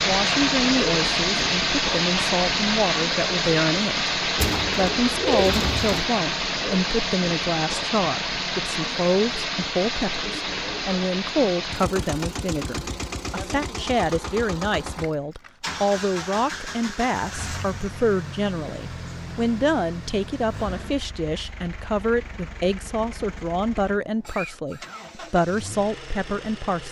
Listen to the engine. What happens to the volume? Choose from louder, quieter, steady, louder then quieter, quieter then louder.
quieter.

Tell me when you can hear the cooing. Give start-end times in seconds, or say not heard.
4.4-6.0.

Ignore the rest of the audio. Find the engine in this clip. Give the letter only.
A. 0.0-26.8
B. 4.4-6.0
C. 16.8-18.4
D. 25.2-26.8
A.